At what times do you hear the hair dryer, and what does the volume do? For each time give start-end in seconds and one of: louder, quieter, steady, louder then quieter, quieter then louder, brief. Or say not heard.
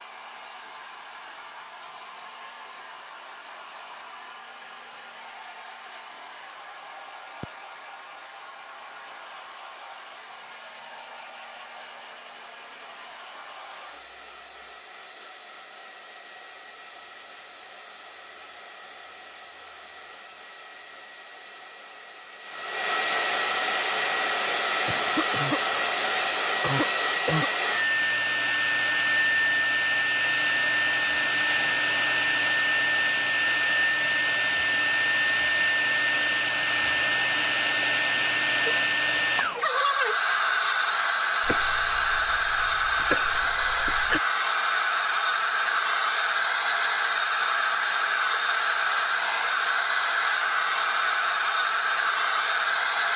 0.0-53.1 louder.